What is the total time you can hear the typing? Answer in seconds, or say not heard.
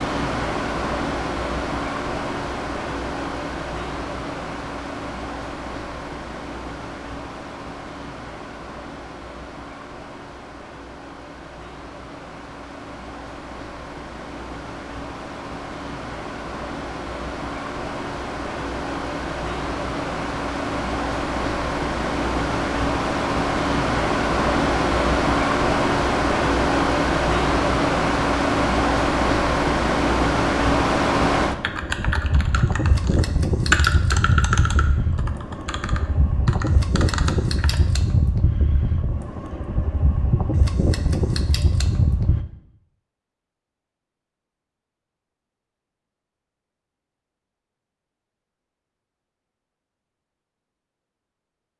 6 s.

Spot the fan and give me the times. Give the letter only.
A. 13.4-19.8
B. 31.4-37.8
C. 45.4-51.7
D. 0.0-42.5
D.